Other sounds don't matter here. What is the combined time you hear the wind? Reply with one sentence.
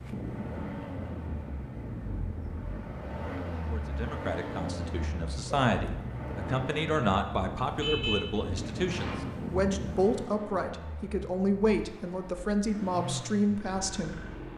You can hear the wind for 10 seconds altogether.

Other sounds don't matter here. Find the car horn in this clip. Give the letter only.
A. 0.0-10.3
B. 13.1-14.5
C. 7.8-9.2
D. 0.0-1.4
C.